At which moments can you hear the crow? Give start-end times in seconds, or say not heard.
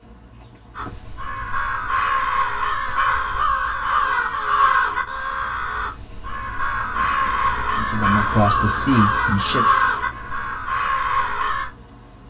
0.8-11.7.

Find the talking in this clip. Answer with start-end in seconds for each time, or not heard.
7.8-9.8.